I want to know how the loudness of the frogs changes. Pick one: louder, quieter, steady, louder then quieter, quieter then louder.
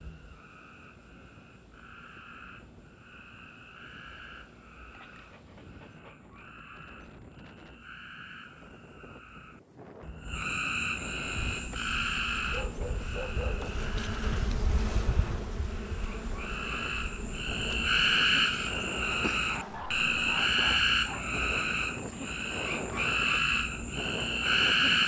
louder.